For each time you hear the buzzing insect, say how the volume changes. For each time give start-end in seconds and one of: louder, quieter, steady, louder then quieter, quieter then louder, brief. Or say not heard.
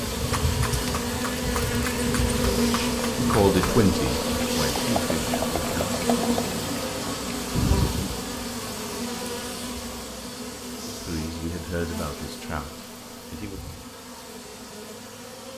0.0-15.5 quieter.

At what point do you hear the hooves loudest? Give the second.
8 s.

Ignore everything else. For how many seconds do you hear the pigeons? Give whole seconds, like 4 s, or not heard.
not heard.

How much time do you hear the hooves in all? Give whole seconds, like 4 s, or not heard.
8 s.